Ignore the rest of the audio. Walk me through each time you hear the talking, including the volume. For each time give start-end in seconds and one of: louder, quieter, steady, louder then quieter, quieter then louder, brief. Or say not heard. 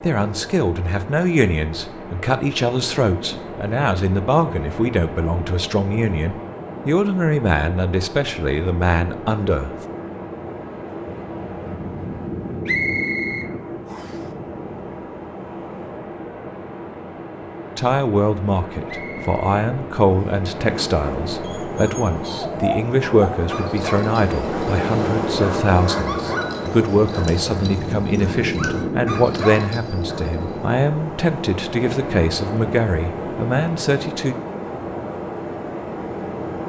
0.0-9.8 steady
17.8-34.4 steady.